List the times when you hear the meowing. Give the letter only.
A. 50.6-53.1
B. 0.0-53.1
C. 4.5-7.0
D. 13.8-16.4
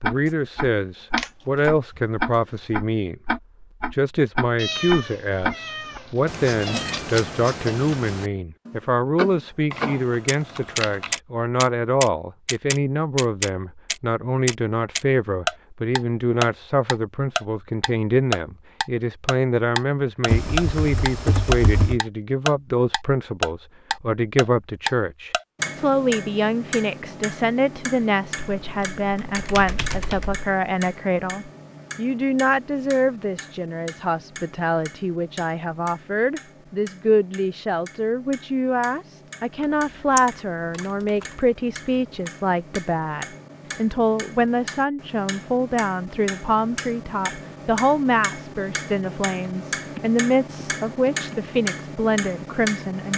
C.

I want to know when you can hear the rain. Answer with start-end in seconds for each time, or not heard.
not heard.